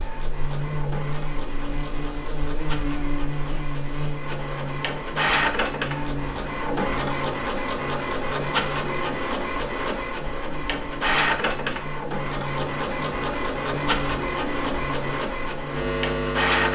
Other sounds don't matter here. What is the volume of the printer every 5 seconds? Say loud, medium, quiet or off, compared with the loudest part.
medium, loud, loud, loud.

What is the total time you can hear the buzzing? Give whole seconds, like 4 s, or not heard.
17 s.